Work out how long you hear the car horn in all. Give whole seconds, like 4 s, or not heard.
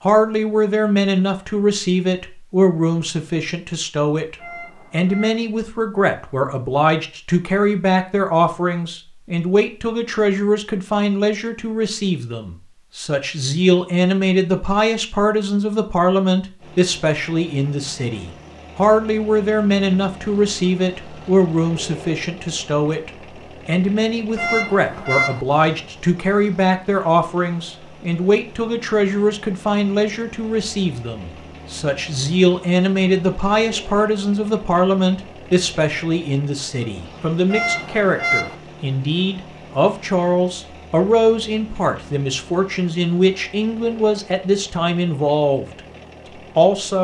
3 s.